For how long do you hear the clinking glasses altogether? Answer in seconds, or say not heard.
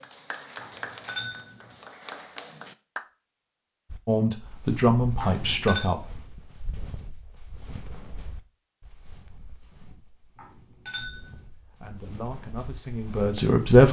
3 s.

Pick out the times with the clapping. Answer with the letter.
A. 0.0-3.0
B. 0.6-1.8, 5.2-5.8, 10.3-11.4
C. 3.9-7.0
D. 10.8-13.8
A.